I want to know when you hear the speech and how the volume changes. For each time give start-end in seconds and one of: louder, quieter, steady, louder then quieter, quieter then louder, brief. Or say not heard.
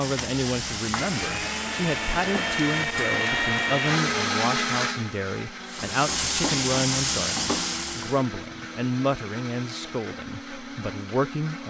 0.0-11.6 steady.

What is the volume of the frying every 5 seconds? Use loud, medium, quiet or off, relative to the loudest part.
medium, loud, off.